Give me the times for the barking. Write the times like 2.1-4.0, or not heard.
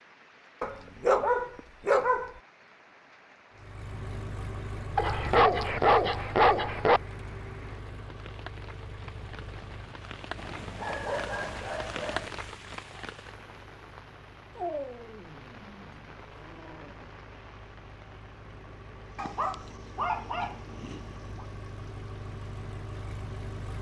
0.6-2.3, 5.0-7.0, 10.3-12.3, 14.6-17.1, 19.1-21.4.